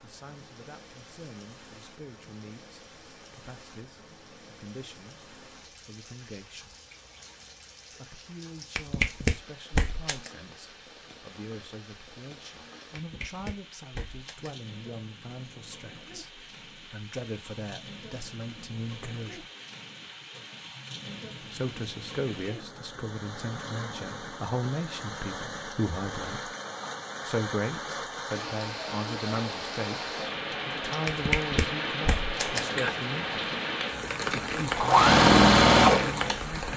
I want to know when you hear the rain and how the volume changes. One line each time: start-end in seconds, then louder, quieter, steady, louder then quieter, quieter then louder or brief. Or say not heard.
0.0-36.7 louder.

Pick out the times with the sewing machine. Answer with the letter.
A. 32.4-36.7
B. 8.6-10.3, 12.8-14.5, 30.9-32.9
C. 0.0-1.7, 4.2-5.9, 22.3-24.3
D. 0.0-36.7
A.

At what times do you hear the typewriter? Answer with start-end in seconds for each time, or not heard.
not heard.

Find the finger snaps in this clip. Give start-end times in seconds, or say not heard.
8.6-10.3, 12.8-14.5, 30.9-32.9.